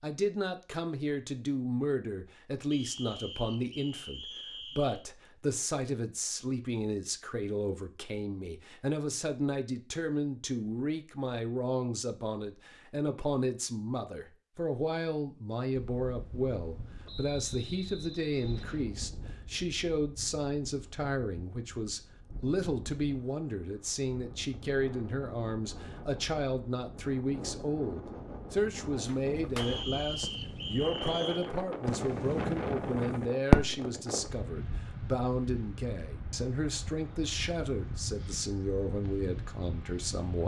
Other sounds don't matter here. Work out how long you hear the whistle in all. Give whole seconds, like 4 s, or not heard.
6 s.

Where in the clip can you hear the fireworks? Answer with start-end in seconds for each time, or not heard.
29.1-34.2.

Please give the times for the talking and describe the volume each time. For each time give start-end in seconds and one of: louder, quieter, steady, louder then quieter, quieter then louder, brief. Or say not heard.
0.0-40.4 steady.